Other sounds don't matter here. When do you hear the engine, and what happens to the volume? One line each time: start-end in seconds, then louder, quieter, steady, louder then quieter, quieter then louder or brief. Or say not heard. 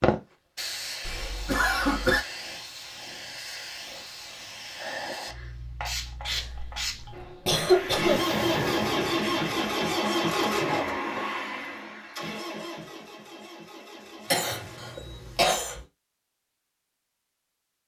7.5-15.9 quieter.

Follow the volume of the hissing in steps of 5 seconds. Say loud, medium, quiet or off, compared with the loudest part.
loud, loud, off, off.